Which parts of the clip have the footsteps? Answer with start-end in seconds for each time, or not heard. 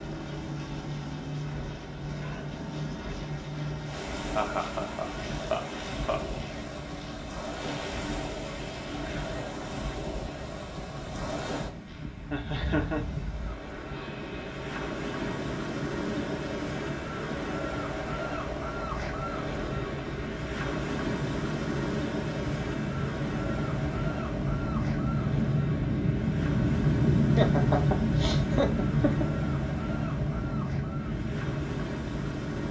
not heard.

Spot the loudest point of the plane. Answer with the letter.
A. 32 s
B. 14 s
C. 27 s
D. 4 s
C.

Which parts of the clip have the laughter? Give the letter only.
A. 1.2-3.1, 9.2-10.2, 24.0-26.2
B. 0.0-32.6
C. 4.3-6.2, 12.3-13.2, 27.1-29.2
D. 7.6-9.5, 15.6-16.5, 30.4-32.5
C.